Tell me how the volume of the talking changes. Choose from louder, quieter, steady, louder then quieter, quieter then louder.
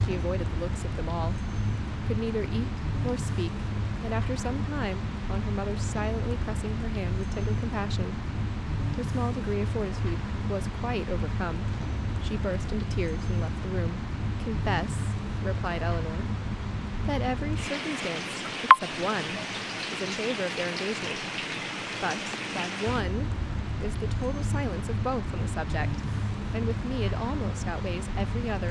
steady.